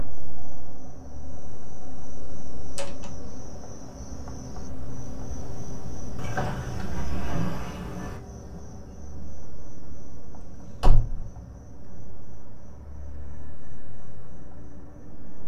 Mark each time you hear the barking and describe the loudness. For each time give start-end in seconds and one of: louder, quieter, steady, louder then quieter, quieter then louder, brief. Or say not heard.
not heard.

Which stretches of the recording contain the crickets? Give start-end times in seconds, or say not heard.
0.0-15.4.